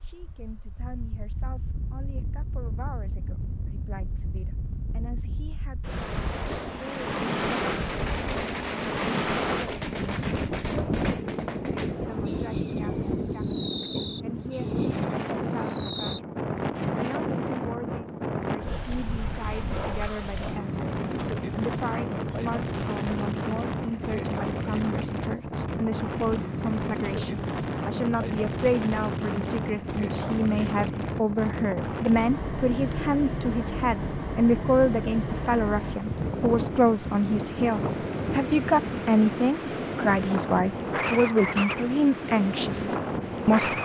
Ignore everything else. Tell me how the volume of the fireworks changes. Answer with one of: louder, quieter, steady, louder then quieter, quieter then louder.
steady.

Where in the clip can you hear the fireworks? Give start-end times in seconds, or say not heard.
7.3-16.2.